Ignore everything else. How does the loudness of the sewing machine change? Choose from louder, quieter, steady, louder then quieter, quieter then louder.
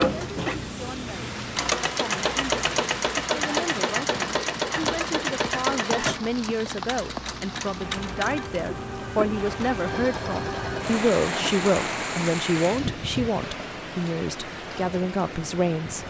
quieter.